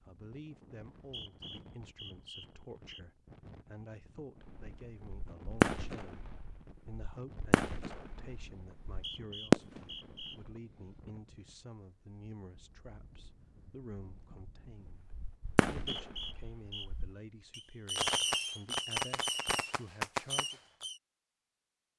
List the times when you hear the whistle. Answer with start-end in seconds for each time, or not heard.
0.9-3.0, 8.8-10.4, 15.4-16.9.